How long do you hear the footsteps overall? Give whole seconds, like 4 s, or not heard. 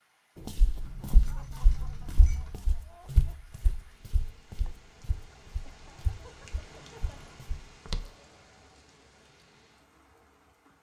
8 s.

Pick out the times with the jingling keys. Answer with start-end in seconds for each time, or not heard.
0.8-2.5, 6.7-7.4.